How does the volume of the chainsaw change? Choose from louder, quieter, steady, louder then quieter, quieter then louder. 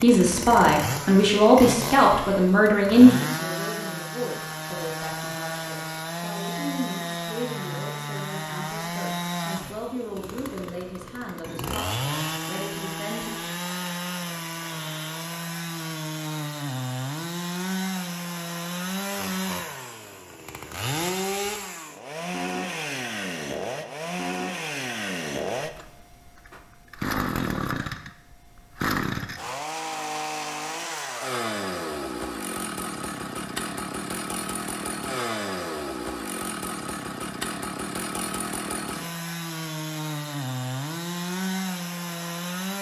steady.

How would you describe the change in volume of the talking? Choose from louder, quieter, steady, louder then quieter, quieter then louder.
quieter.